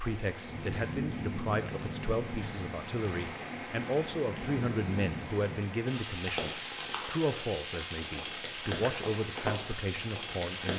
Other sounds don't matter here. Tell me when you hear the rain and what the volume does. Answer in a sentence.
The rain can be heard from 0.0 to 10.7 s, at a steady volume.